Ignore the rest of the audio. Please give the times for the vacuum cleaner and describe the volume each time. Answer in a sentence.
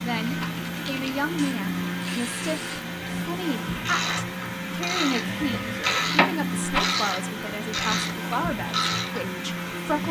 You can hear the vacuum cleaner from 0.0 to 10.0 s, at a steady volume.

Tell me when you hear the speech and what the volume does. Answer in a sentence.
The speech can be heard from 0.0 to 10.0 s, at a steady volume.